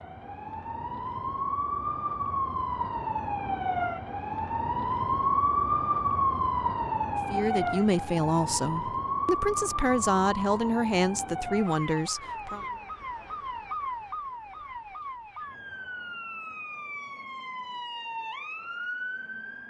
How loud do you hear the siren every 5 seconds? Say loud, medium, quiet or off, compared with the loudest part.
loud, loud, medium, medium.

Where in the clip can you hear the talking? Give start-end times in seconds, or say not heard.
7.2-12.7.